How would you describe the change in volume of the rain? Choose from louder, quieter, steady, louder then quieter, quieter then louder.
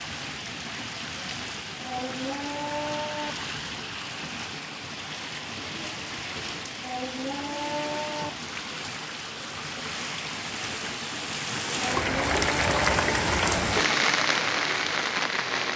louder.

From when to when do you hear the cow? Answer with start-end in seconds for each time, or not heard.
1.8-3.4, 6.8-8.3, 11.7-13.0.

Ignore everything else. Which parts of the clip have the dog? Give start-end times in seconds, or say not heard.
not heard.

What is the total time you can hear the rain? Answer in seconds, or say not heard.
16 s.